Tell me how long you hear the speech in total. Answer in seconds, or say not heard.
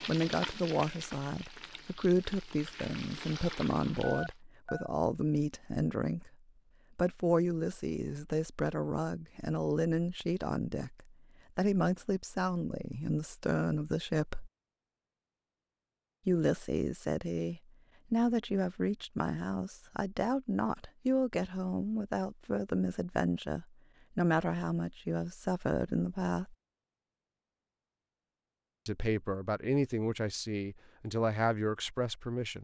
28 s.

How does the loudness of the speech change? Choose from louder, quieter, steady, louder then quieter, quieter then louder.
steady.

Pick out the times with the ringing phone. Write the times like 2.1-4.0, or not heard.
4.0-4.9.